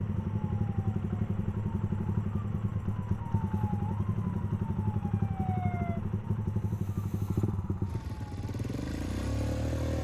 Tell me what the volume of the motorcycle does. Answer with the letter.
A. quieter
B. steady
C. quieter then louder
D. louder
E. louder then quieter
B.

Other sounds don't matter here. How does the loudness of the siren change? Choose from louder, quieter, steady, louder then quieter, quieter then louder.
quieter.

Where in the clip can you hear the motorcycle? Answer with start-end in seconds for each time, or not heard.
0.0-9.9.